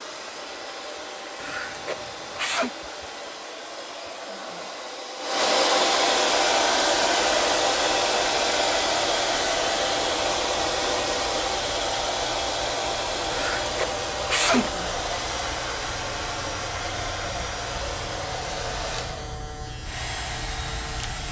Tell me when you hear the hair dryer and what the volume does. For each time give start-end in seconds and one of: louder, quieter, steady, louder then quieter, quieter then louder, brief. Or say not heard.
0.0-21.2 louder then quieter.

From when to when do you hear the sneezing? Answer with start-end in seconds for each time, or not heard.
1.4-2.7, 13.3-14.7.